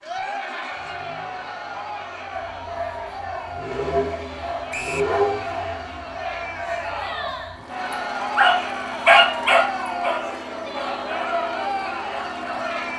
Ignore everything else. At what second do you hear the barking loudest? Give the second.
9 s.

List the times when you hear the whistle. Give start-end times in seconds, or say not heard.
4.7-5.2.